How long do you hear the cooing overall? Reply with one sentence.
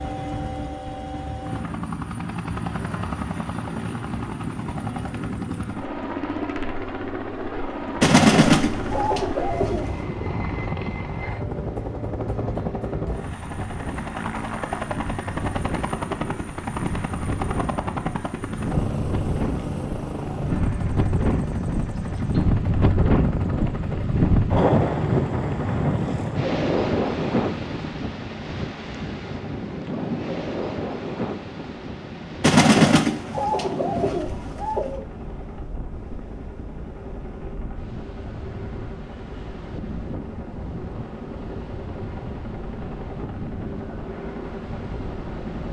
You can hear the cooing for 5 seconds altogether.